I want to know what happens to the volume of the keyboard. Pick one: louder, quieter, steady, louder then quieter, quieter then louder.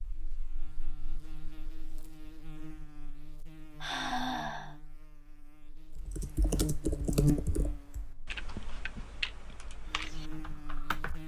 quieter.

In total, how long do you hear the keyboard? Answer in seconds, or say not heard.
5 s.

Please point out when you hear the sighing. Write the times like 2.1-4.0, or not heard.
3.8-4.8.